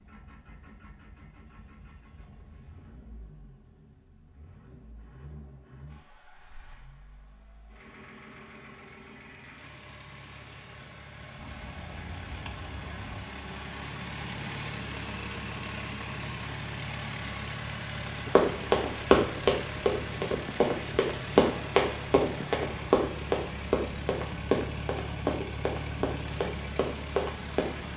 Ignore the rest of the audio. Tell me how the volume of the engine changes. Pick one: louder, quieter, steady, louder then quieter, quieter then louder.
louder.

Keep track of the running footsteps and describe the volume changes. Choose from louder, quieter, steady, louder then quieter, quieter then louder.
quieter.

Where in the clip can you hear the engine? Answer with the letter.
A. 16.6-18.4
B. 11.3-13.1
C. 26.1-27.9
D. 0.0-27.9
D.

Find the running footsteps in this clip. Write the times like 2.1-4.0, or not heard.
18.4-27.9.